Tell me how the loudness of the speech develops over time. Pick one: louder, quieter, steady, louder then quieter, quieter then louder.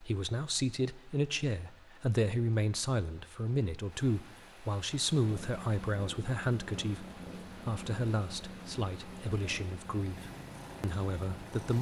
quieter.